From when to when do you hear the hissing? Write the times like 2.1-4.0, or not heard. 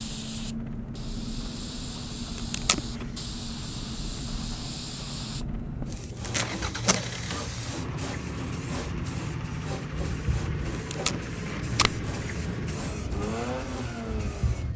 0.0-14.7.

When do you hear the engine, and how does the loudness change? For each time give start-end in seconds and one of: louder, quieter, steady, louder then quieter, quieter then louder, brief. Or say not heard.
0.0-14.7 steady.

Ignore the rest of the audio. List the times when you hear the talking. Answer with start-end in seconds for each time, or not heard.
not heard.